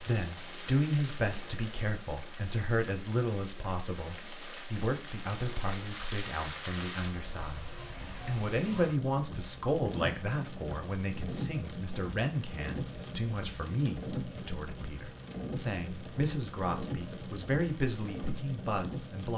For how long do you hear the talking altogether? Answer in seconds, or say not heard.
19 s.